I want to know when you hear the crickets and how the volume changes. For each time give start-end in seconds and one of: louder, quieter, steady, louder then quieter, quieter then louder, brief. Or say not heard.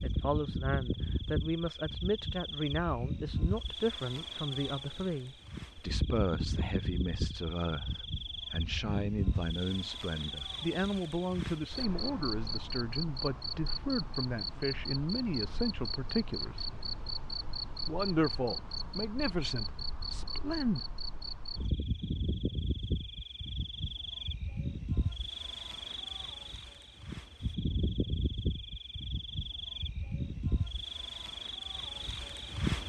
0.0-32.8 steady.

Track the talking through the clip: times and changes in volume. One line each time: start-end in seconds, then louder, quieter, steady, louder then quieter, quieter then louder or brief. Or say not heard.
0.0-16.8 steady
17.9-20.8 brief.